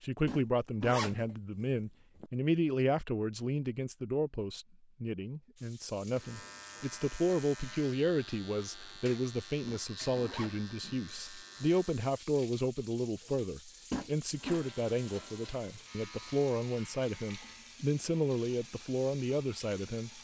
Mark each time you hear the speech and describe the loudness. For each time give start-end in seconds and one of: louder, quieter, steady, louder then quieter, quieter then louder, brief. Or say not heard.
0.0-20.1 steady.